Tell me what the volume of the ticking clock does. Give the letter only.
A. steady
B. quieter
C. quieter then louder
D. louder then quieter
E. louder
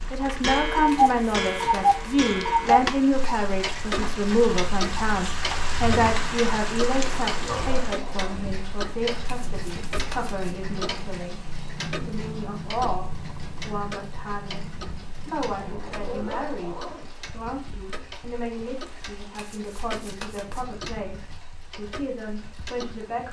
B.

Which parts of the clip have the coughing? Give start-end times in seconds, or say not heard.
not heard.